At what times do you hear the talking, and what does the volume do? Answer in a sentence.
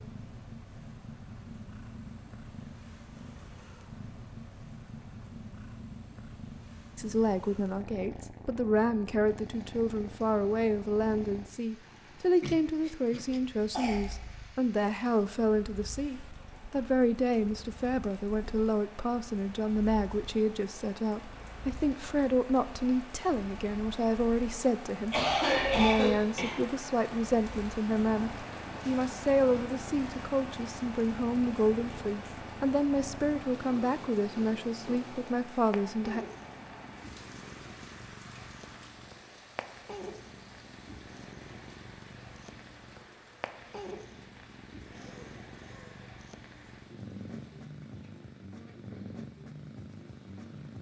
The talking can be heard from 7.0 to 36.2 s, at a steady volume.